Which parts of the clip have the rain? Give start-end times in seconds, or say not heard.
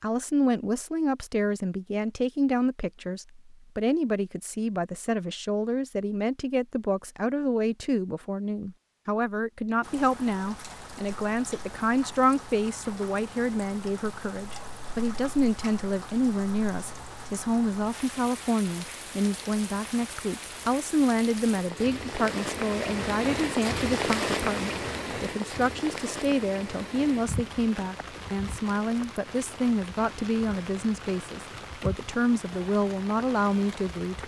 9.8-34.2.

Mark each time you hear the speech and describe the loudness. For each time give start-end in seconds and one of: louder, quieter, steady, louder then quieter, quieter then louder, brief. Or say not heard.
0.0-34.2 steady.